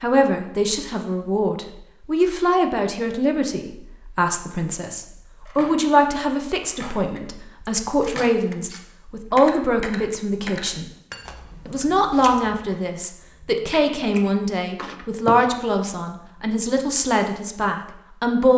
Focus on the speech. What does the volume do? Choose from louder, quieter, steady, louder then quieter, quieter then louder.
steady.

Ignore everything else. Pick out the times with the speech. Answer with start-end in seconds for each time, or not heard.
0.0-10.8, 11.7-18.5.